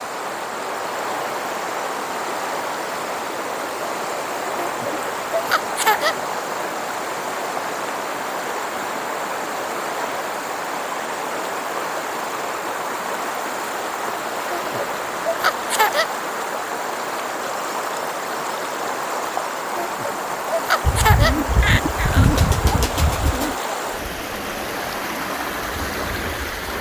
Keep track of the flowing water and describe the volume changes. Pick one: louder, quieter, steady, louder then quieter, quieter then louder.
steady.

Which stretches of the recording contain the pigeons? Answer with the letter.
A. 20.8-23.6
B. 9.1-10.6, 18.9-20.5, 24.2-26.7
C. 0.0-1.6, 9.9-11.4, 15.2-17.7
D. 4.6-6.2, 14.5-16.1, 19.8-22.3
A.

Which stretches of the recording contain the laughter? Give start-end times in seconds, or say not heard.
4.6-6.2, 14.5-16.1, 19.8-22.3.